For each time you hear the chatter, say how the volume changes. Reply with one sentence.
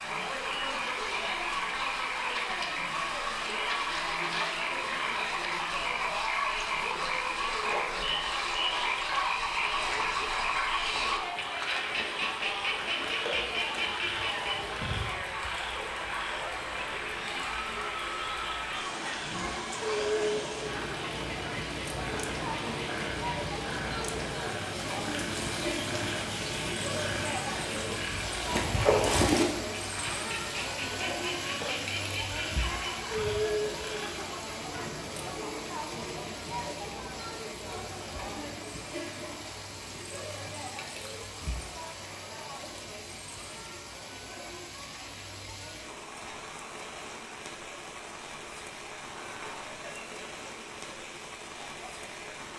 You can hear the chatter from 0.0 to 52.3 s, getting quieter.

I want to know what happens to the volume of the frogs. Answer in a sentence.
The loudness of the frogs goes down, then up.